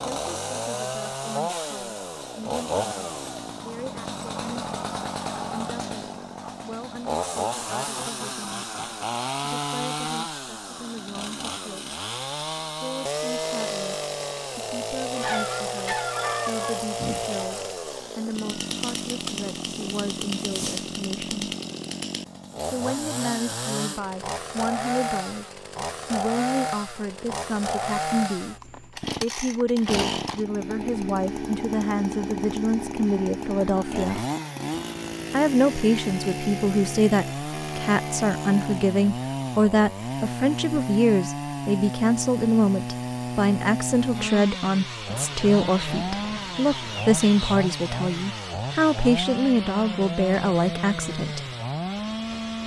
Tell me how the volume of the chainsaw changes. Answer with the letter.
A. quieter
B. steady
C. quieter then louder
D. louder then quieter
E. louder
B.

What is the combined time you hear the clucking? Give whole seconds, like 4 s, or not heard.
5 s.